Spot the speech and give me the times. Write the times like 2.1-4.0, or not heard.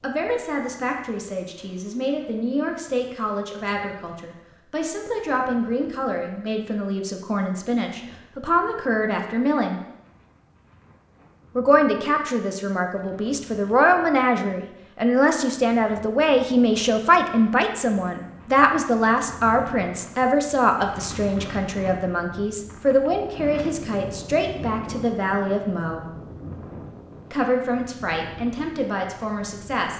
0.0-9.8, 11.6-26.1, 27.3-29.9.